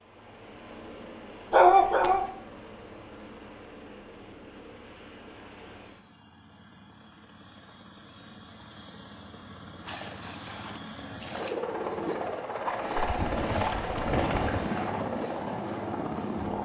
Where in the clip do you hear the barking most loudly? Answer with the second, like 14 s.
2 s.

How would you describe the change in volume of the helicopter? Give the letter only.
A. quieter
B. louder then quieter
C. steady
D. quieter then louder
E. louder
E.